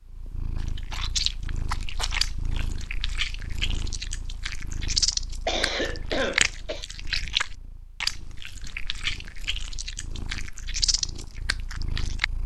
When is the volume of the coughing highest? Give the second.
6 s.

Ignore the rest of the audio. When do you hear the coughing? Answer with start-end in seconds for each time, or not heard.
5.5-6.8.